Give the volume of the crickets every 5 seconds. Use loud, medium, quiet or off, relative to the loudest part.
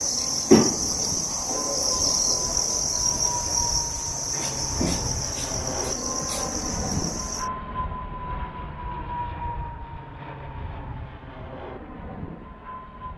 loud, medium, off.